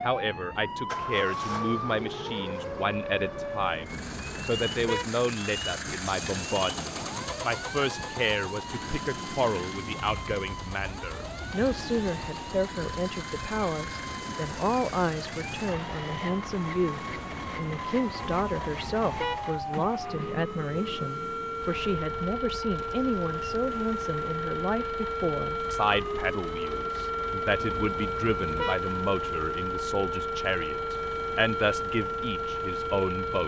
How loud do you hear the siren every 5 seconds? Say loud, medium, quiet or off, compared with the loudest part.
loud, medium, medium, medium, loud, loud, loud.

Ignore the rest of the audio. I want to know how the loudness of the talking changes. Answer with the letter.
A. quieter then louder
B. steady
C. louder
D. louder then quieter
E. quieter
B.